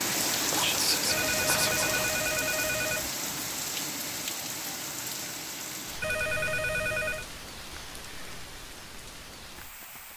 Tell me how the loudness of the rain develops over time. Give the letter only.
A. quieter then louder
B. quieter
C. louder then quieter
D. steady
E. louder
B.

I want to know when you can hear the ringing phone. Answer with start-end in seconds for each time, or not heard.
1.1-3.1, 6.0-7.2.